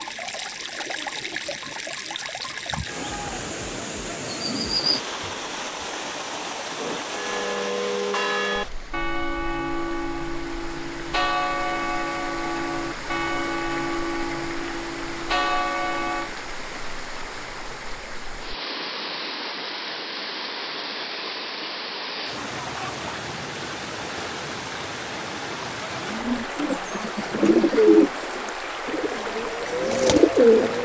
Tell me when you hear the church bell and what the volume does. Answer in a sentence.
The church bell can be heard from 6.8 to 16.3 s, at a steady volume.